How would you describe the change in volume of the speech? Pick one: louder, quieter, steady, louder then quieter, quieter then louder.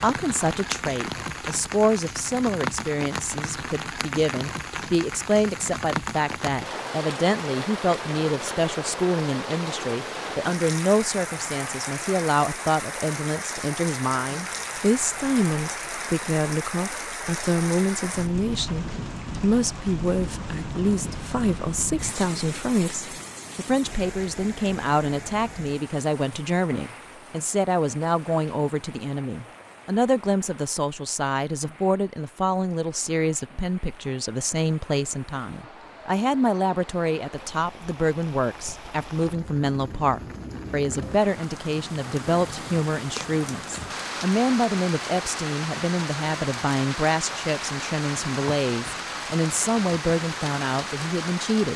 steady.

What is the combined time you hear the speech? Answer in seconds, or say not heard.
52 s.